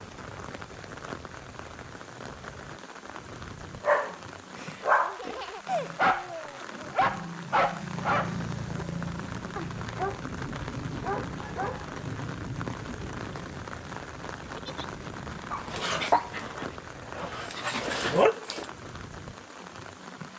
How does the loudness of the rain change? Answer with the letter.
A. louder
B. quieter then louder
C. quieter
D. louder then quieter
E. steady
D.